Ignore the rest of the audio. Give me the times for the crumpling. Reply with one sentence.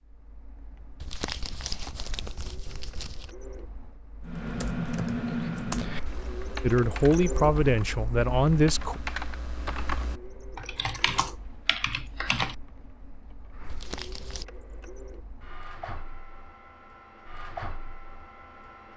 You can hear the crumpling from 1.0 to 3.4 s and from 13.7 to 14.4 s.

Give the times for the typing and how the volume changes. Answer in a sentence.
You can hear the typing from 4.2 to 12.6 s, getting quieter then louder.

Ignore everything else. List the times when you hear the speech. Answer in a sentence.
You can hear the speech from 6.6 to 9.0 s.